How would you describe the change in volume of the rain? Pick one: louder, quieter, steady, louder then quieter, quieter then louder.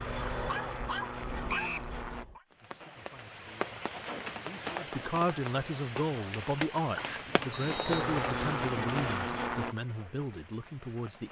quieter.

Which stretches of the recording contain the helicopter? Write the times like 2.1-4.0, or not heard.
0.0-2.2, 7.5-9.8.